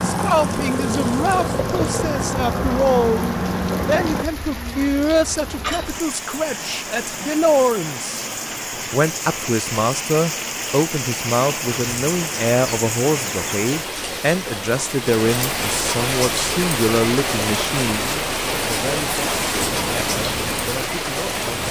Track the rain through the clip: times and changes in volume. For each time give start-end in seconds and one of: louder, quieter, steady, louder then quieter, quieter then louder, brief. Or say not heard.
0.0-21.6 louder.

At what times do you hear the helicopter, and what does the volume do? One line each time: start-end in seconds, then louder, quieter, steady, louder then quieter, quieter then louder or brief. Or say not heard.
0.0-4.2 steady
19.6-21.6 brief.